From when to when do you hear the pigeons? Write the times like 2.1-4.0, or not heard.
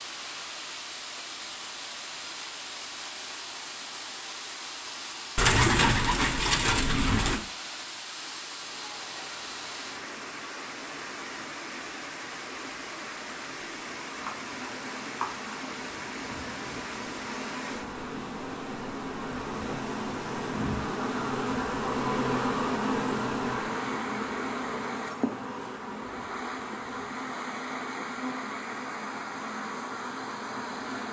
5.3-7.4.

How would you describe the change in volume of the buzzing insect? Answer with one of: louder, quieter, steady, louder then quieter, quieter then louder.
louder then quieter.